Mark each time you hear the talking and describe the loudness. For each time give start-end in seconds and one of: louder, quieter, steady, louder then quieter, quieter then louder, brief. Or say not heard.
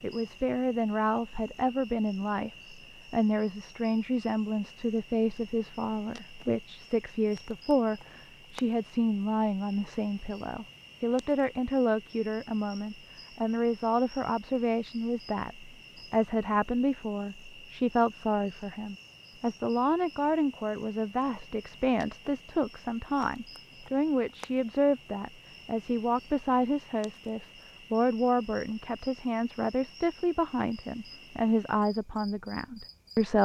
0.0-33.3 steady.